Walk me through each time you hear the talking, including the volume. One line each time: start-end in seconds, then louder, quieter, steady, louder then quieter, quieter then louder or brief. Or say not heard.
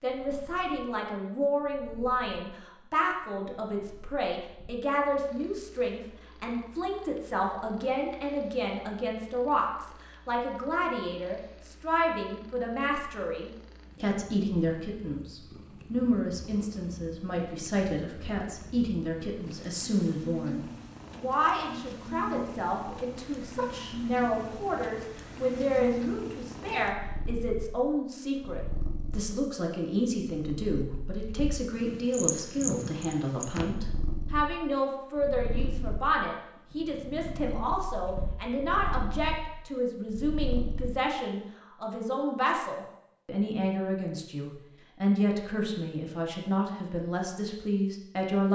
0.0-48.4 steady.